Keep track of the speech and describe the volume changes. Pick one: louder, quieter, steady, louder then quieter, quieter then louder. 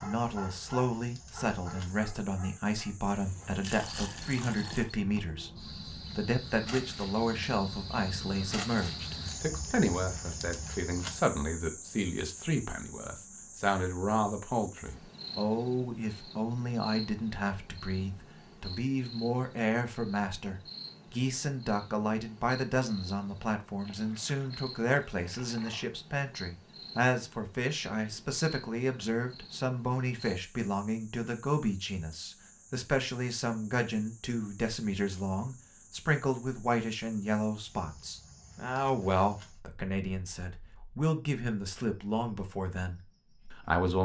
steady.